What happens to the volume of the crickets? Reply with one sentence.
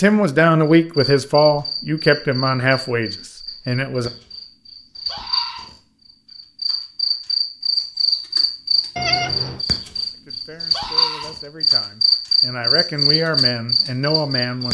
The loudness of the crickets goes up.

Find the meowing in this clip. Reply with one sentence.
The meowing can be heard from 8.9 to 9.7 s.